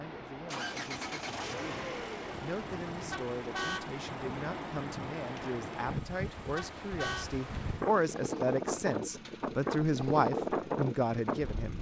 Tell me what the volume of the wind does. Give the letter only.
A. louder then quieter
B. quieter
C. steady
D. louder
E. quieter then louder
D.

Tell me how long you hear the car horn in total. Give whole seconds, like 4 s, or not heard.
2 s.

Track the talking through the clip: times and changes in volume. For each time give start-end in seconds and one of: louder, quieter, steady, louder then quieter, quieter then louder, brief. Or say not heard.
0.0-11.7 louder.